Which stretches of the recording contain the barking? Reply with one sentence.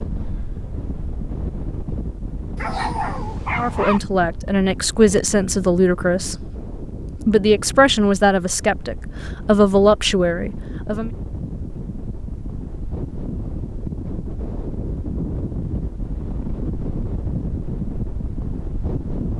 You can hear the barking from 2.5 to 4.0 s.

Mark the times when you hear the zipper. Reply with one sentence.
You can't hear the zipper here.